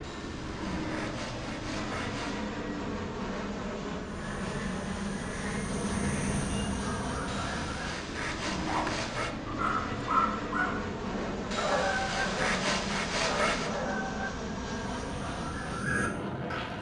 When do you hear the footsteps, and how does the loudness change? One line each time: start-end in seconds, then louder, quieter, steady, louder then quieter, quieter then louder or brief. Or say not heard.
not heard.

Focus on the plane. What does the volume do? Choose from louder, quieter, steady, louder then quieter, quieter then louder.
steady.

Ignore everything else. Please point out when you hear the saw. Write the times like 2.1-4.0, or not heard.
0.0-2.5, 7.2-9.3, 11.5-13.7.